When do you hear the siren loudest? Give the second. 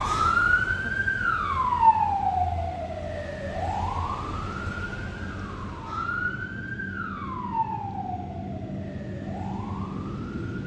2 s.